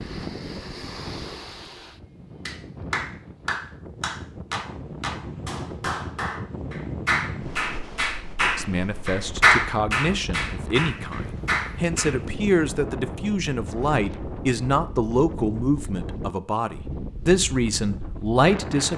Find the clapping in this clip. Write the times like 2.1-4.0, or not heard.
2.5-12.2.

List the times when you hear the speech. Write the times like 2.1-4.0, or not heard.
8.4-18.9.